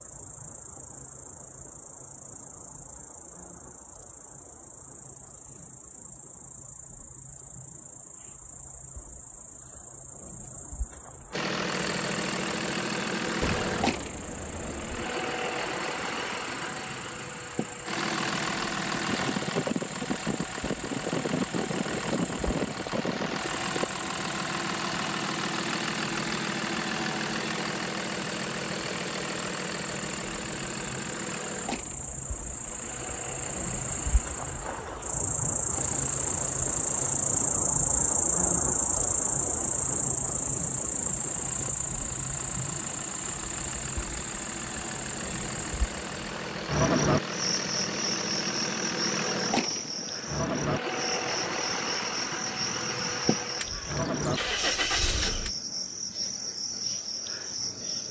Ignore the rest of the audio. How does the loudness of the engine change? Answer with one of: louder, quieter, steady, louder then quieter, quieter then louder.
quieter then louder.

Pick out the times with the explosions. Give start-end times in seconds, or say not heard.
13.4-15.1.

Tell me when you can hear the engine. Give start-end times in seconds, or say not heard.
11.3-55.5.